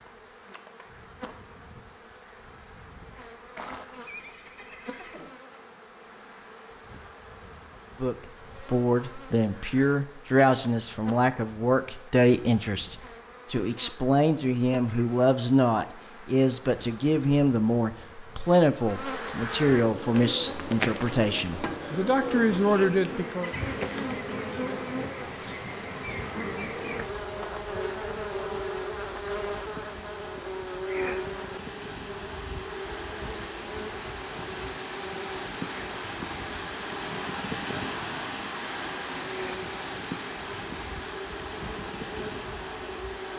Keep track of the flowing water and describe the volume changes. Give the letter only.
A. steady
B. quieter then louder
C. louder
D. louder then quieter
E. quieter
C.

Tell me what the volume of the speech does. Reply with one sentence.
The volume of the speech stays about the same.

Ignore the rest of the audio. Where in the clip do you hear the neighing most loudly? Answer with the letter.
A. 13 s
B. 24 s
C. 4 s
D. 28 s
C.